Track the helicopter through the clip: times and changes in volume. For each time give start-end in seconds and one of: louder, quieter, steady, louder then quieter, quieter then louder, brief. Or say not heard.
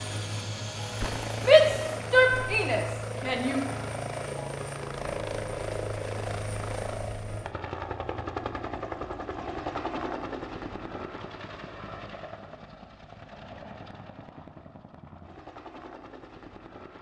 0.0-16.9 quieter.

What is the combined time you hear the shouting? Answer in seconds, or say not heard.
2 s.